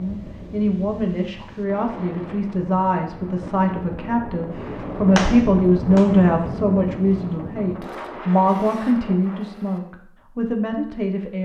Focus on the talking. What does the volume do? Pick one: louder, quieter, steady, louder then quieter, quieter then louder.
louder then quieter.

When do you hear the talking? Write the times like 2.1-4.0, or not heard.
0.0-11.4.